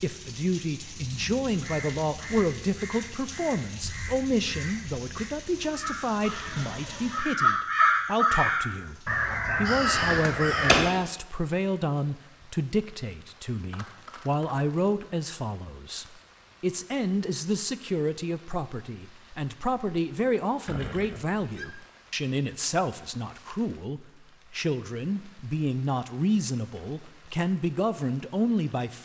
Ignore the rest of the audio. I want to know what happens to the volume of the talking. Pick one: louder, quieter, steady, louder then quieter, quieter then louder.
steady.